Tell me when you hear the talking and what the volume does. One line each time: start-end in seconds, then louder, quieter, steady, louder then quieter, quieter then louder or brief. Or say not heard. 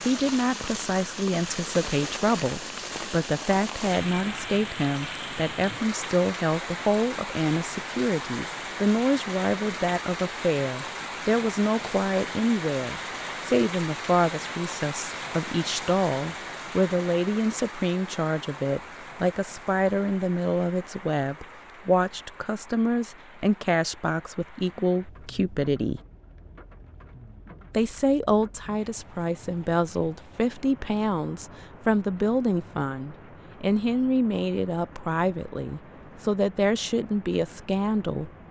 0.1-26.0 steady
27.7-38.3 steady.